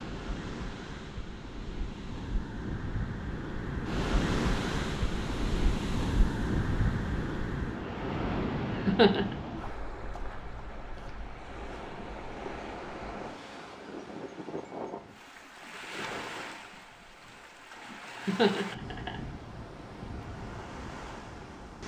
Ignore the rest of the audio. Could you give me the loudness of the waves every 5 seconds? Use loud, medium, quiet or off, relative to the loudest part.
loud, loud, medium, medium, medium.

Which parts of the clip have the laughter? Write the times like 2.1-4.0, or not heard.
8.8-9.3, 18.2-19.1.